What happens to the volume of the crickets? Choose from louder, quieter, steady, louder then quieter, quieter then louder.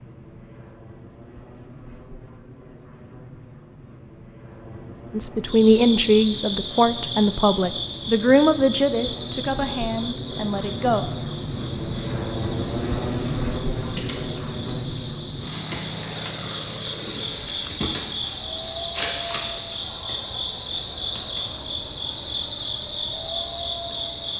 quieter then louder.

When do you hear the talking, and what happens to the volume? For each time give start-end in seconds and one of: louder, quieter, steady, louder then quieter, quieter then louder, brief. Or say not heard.
5.1-11.1 quieter.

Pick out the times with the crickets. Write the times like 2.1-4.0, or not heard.
5.5-24.3.